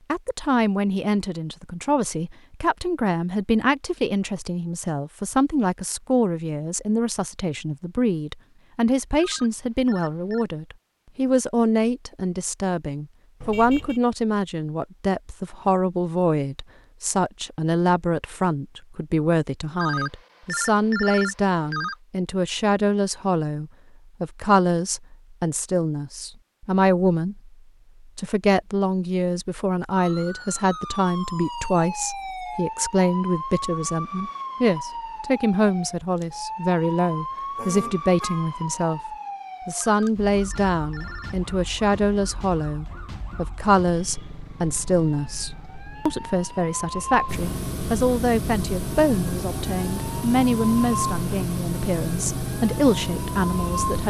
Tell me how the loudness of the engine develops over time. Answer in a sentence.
The loudness of the engine stays about the same.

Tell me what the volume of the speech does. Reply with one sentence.
The loudness of the speech stays about the same.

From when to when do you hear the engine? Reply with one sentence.
The engine can be heard from 47.2 to 54.0 s.